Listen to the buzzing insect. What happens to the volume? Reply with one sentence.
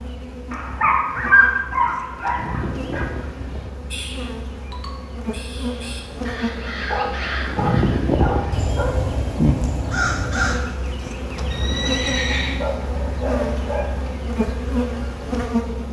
The volume of the buzzing insect goes up.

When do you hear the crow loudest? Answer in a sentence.
The volume of the crow peaks at 10 seconds.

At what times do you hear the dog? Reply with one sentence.
The dog can be heard from 0.5 to 3.0 s, from 6.8 to 8.9 s and from 12.6 to 14.2 s.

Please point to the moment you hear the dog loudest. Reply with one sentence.
The volume of the dog peaks at 1 second.